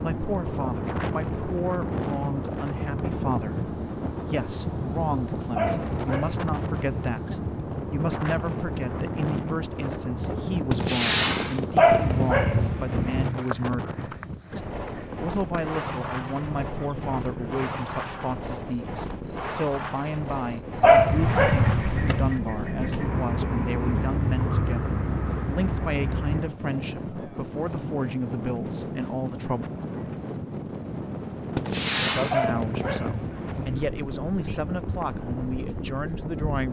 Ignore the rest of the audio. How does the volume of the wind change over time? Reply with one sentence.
The volume of the wind stays about the same.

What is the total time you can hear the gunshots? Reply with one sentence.
The gunshots can be heard for 3 seconds in total.